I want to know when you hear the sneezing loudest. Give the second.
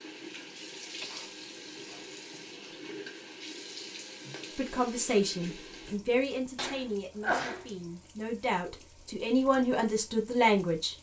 7 s.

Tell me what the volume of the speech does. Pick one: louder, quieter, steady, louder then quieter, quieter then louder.
quieter then louder.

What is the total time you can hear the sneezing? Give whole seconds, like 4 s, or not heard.
3 s.